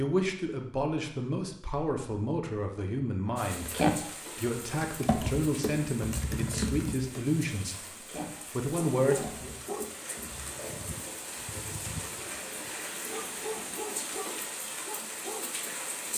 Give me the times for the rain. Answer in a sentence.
The rain can be heard from 3.4 to 16.1 s.